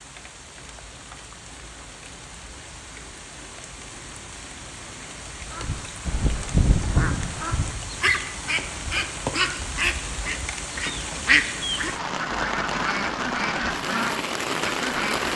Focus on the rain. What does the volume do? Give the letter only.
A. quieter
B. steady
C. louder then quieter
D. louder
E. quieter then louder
D.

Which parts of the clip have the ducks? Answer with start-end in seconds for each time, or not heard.
5.5-15.3.